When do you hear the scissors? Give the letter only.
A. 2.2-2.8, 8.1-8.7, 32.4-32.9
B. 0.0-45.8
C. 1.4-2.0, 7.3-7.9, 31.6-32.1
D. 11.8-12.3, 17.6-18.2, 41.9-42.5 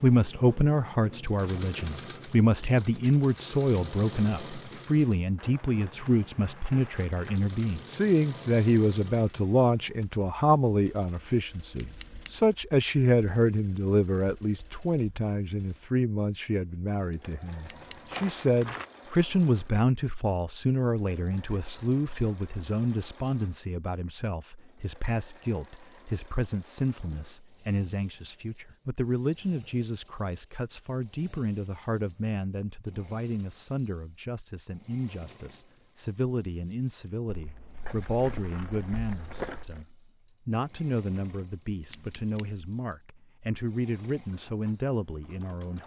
D.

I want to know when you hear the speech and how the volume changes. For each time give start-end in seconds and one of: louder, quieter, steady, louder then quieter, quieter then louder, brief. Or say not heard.
0.0-45.8 quieter.